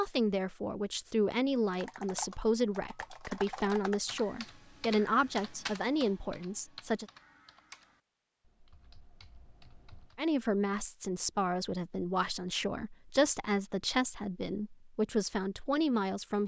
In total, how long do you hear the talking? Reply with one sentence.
You can hear the talking for 13 seconds altogether.